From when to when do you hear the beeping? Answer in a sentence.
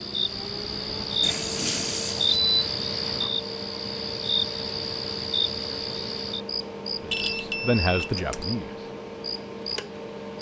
The beeping can be heard from 1.2 to 3.3 s and from 7.1 to 8.4 s.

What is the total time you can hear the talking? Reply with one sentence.
You can hear the talking for 2 seconds altogether.